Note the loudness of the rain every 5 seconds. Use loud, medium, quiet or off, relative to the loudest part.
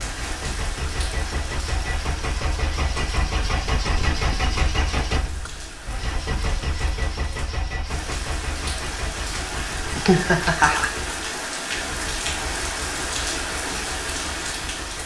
medium, medium, loud.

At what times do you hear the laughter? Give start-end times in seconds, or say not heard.
9.9-10.9.